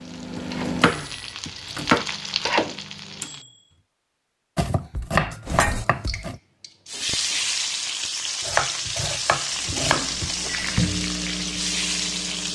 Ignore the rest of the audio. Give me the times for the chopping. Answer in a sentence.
You can hear the chopping from 0.3 to 2.0 s, from 4.5 to 6.4 s and from 8.4 to 10.3 s.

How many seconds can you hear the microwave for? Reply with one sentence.
The microwave can be heard for 7 seconds in total.